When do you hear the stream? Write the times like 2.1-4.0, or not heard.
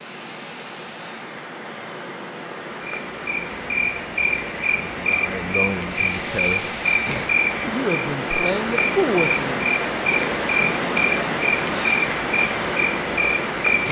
0.0-13.8.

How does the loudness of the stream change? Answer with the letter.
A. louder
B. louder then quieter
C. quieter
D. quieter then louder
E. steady
A.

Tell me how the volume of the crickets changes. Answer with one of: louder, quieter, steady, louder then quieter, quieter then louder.
steady.